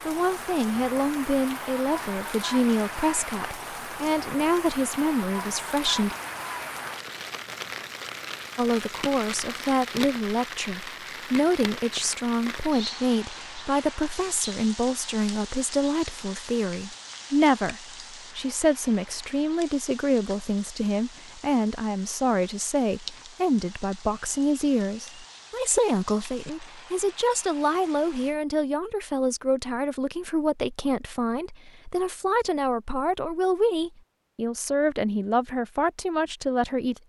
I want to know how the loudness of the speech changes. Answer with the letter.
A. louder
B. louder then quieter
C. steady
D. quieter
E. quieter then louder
C.